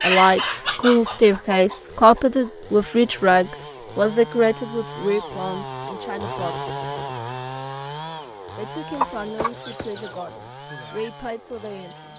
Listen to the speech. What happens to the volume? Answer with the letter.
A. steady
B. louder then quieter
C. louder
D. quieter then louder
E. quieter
E.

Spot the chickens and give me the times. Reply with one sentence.
You can hear the chickens from 0.0 to 2.5 s and from 8.9 to 12.1 s.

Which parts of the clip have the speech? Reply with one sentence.
You can hear the speech from 0.0 to 6.7 s and from 8.6 to 12.1 s.